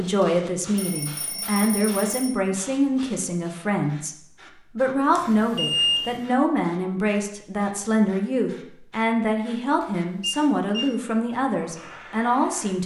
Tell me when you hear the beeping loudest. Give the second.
6 s.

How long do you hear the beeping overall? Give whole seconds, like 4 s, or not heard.
4 s.